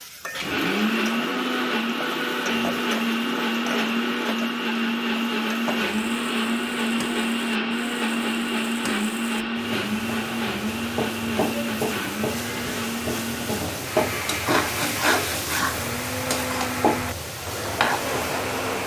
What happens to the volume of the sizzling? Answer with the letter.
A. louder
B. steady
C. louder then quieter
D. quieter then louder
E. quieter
A.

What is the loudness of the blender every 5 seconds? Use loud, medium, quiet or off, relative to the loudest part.
loud, loud, medium, medium.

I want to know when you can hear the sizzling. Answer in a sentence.
You can hear the sizzling from 0.0 to 18.8 s.